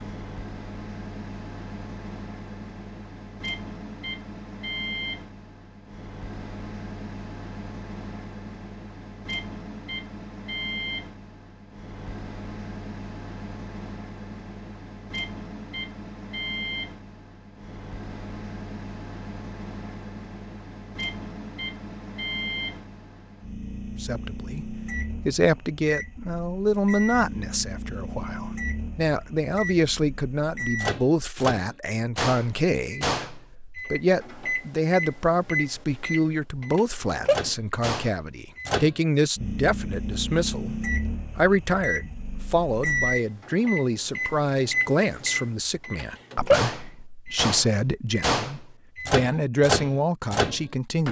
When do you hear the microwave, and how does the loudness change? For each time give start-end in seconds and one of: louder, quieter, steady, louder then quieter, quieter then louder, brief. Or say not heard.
0.0-51.0 louder.